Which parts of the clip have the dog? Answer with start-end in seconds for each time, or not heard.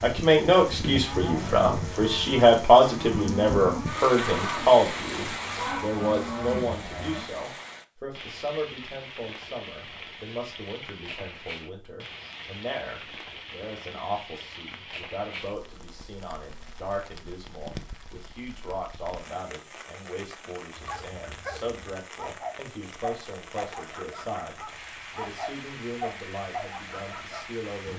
20.8-27.4.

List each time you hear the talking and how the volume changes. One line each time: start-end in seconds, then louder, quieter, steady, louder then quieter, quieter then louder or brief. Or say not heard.
0.0-27.9 quieter.